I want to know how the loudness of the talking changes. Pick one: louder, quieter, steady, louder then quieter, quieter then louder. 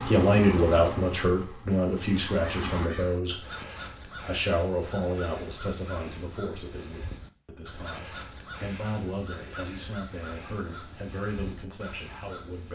quieter.